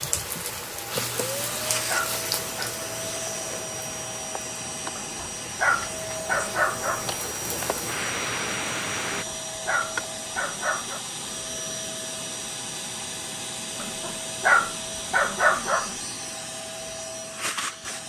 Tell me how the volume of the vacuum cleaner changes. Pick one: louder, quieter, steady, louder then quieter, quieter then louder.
steady.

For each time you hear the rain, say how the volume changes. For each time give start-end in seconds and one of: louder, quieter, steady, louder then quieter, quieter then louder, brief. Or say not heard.
0.0-9.2 quieter then louder.